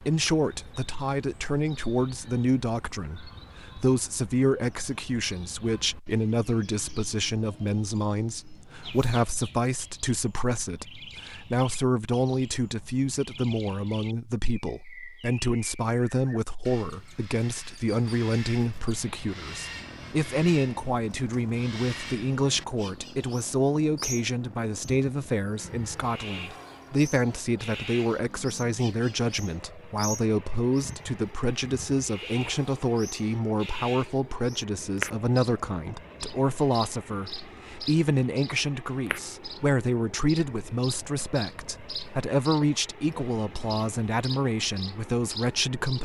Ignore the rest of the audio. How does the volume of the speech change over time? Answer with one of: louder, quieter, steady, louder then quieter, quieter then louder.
steady.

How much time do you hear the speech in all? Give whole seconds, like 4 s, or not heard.
46 s.